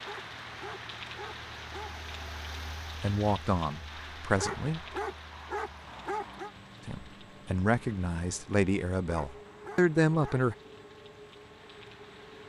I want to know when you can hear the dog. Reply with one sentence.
You can hear the dog from 0.0 to 2.0 s, from 4.3 to 6.5 s and from 9.1 to 10.5 s.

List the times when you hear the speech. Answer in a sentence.
The speech can be heard from 3.0 to 4.8 s and from 6.8 to 10.6 s.